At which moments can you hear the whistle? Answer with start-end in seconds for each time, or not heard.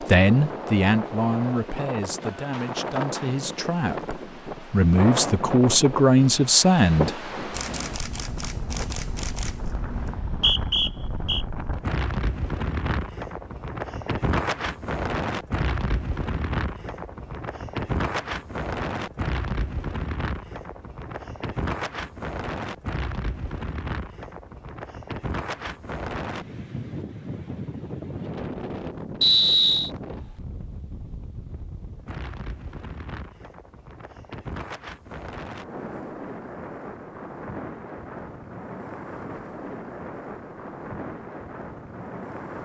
10.1-11.4, 29.2-29.9.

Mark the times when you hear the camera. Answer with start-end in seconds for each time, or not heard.
7.5-10.2.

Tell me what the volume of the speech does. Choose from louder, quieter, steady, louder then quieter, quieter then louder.
quieter then louder.